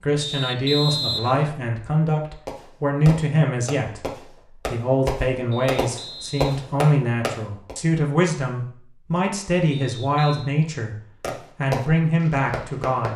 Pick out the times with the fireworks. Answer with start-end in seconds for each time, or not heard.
2.5-7.8, 11.2-13.1.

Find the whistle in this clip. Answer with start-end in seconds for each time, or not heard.
0.2-1.6, 5.5-6.6, 9.7-10.5.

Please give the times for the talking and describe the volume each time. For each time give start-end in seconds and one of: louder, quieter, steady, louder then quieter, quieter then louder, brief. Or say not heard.
0.0-10.9 steady
11.6-13.1 brief.